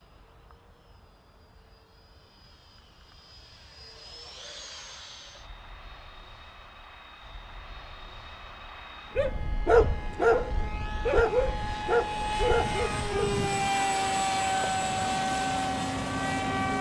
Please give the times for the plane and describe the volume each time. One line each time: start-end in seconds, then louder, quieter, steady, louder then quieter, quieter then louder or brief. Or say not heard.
0.0-16.7 louder.